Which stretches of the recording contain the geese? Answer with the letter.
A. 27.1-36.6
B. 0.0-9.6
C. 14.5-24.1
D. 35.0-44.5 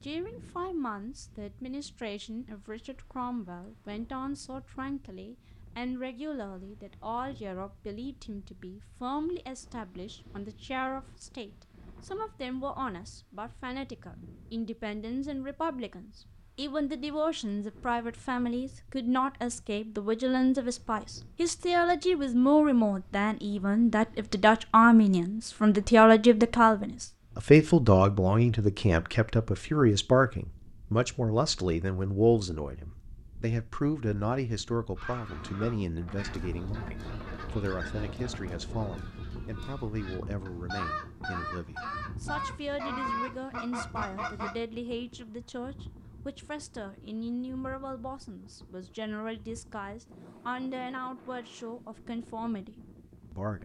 D.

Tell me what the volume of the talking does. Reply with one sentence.
The loudness of the talking goes up, then down.